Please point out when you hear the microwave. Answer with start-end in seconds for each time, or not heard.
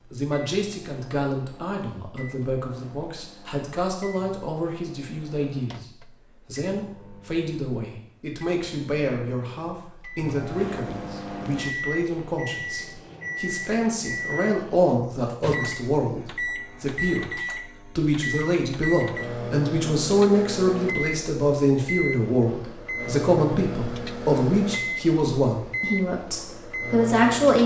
0.0-27.6.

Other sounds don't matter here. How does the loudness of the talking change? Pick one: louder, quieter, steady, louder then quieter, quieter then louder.
louder.